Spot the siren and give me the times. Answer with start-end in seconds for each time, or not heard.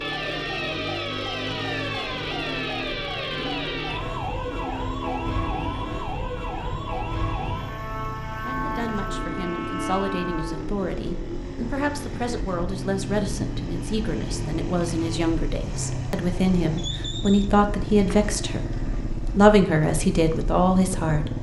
0.0-10.6.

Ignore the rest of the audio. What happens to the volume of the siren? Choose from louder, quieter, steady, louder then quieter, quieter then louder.
steady.